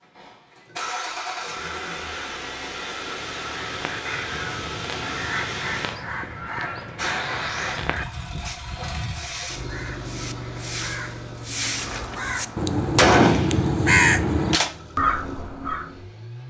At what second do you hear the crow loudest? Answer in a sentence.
The loudest moment of the crow is at 14 seconds.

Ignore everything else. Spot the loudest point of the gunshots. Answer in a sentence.
The loudest moment of the gunshots is at 13 seconds.